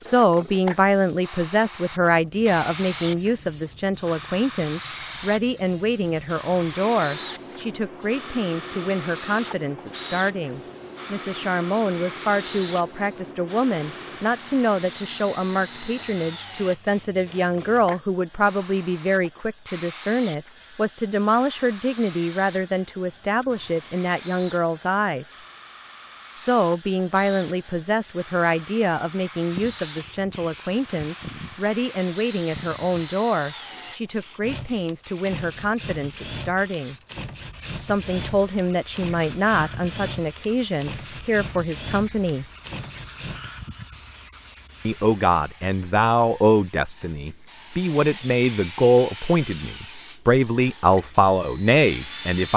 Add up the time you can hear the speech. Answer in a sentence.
The speech can be heard for 48 seconds in total.